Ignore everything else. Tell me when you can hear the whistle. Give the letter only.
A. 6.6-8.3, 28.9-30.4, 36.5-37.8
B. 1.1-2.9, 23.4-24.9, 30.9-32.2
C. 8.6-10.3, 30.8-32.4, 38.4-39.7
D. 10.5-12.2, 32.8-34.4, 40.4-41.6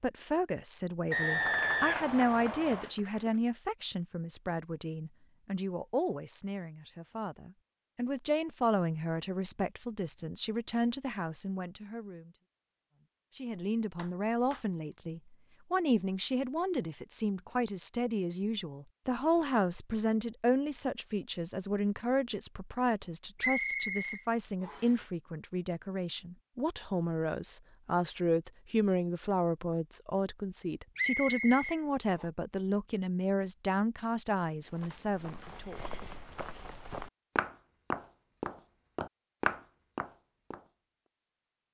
B.